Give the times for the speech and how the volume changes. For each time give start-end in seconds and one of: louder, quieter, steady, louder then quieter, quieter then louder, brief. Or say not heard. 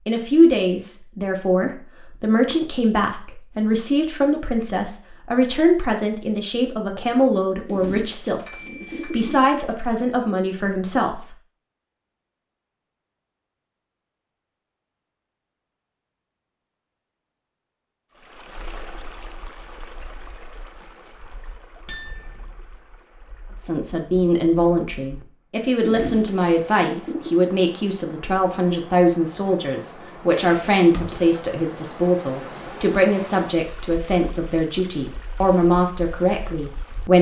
0.1-11.2 steady
23.6-37.1 steady.